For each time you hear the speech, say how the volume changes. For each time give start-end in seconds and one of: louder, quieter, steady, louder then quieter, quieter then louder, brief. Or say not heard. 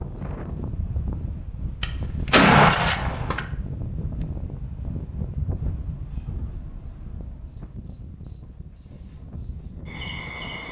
not heard.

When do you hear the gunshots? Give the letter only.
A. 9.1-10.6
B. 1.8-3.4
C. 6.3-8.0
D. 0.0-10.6
B.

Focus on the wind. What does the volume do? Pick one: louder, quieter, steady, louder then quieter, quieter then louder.
quieter.